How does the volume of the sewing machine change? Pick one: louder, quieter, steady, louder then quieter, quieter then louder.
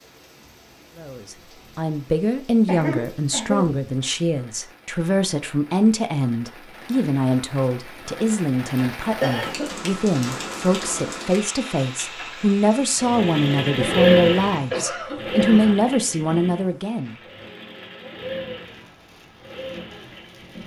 quieter.